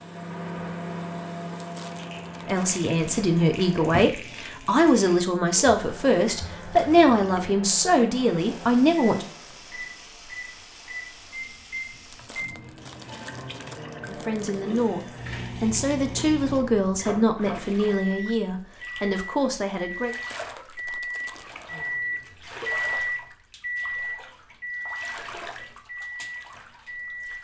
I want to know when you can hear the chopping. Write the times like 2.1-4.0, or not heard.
not heard.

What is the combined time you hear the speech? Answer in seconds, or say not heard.
13 s.